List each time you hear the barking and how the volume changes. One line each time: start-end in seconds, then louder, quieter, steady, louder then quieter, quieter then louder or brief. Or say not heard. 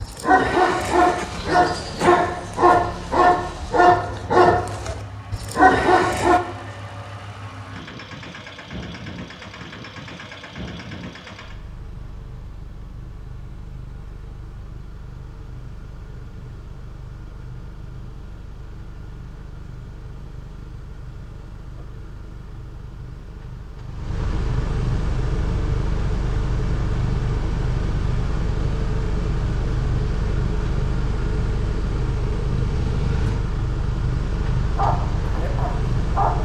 0.0-6.4 steady
34.8-36.3 brief.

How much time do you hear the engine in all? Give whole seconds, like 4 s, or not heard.
36 s.